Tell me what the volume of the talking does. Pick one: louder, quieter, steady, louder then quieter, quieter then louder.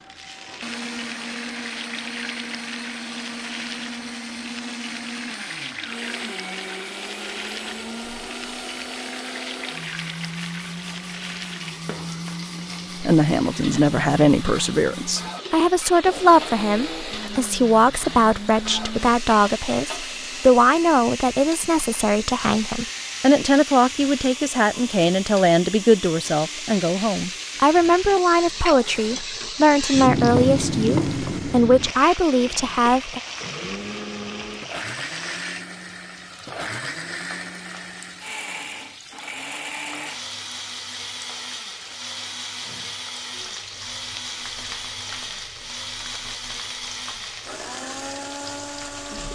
steady.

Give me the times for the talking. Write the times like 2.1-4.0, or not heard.
13.0-33.2.